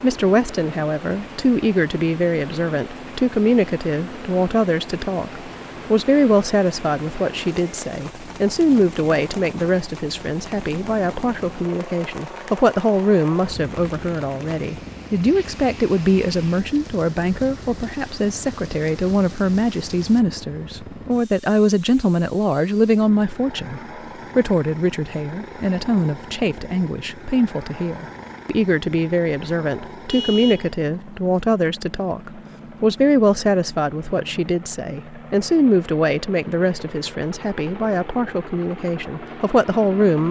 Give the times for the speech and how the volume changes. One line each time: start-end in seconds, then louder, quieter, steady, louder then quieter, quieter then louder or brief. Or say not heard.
0.0-40.2 steady.